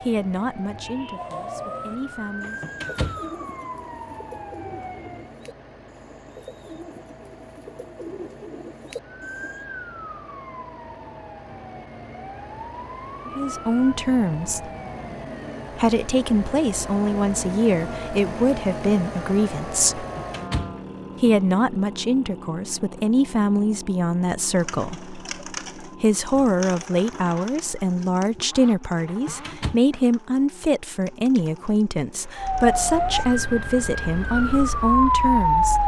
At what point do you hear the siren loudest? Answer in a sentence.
The volume of the siren peaks at 35 seconds.